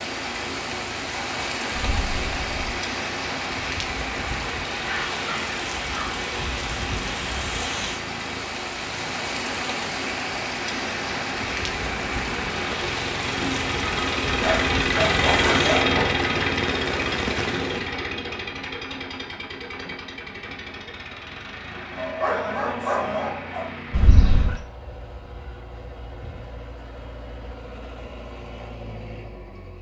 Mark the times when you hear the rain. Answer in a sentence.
The rain can be heard from 0.0 to 18.0 s.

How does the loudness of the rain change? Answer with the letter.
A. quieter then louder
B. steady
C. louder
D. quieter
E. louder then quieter
B.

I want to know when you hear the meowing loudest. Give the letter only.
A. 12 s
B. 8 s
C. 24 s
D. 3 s
C.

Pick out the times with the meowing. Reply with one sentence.
You can hear the meowing from 1.8 to 2.6 s and from 23.9 to 24.6 s.